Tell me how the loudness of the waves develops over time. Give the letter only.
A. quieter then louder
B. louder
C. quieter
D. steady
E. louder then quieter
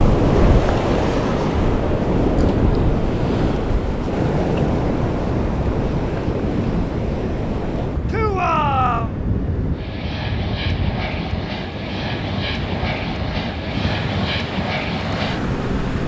C.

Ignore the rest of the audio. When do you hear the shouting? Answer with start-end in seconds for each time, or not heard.
8.1-9.2.